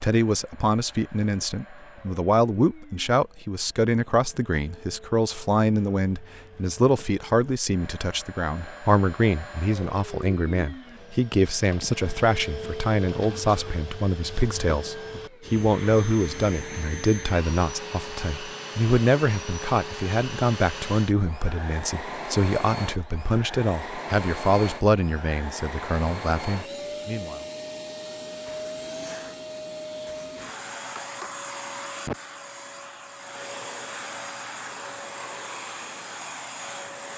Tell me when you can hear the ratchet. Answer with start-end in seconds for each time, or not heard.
not heard.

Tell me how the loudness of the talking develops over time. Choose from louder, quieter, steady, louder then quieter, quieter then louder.
steady.